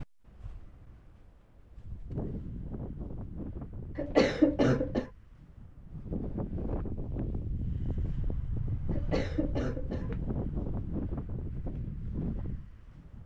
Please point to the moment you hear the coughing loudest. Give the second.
4 s.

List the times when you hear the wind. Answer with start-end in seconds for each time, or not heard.
0.0-13.2.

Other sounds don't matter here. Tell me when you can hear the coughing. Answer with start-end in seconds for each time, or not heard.
4.0-5.1, 8.9-10.2.